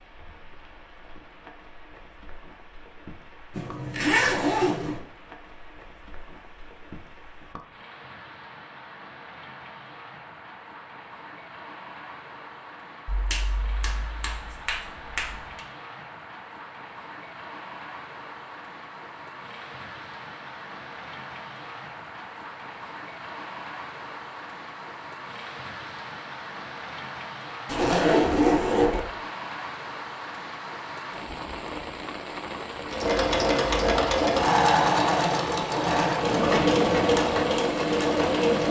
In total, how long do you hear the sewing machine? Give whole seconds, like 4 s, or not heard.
6 s.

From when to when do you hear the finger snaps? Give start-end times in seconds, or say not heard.
13.1-15.7.